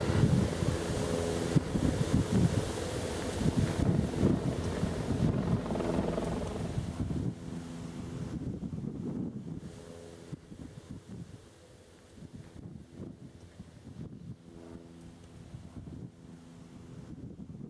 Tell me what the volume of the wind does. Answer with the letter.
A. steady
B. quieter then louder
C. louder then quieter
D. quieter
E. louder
D.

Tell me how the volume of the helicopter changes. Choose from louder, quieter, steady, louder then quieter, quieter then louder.
louder.